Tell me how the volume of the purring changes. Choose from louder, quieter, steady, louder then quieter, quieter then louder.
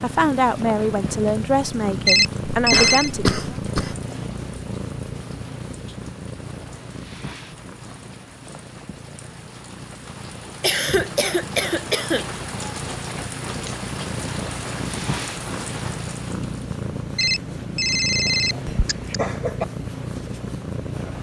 quieter then louder.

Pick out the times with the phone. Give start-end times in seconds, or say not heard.
2.0-3.1, 17.1-19.2.